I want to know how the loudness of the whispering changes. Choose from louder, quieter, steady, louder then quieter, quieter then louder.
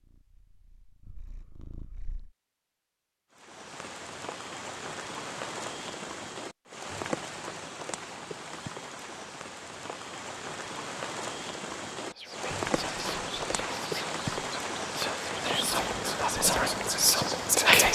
louder.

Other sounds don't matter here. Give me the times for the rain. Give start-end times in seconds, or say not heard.
3.3-17.8.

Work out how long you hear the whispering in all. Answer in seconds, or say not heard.
6 s.